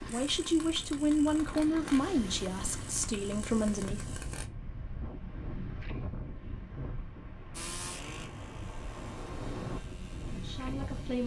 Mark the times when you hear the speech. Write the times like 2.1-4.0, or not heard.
0.0-4.0, 10.3-11.2.